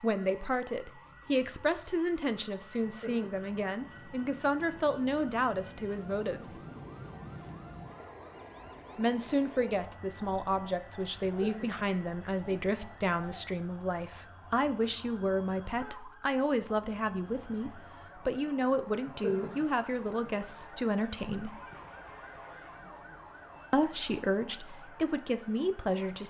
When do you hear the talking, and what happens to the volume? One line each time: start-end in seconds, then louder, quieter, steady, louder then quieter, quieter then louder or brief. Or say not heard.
0.0-6.6 steady
8.9-21.6 steady
23.7-26.2 brief.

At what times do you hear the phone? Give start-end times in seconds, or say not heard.
not heard.